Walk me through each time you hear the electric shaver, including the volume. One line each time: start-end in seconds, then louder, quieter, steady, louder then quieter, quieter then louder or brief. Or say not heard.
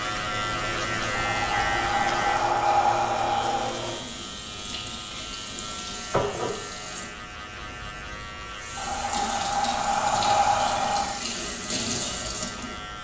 0.0-12.9 quieter.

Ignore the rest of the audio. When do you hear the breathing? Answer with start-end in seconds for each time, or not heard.
1.1-3.7, 8.8-11.2.